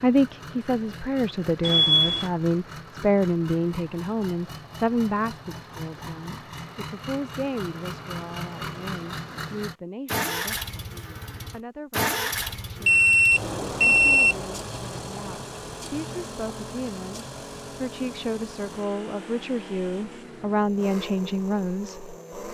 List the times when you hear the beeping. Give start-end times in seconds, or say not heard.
1.6-2.3, 12.8-14.3.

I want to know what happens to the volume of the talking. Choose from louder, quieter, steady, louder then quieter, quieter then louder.
quieter then louder.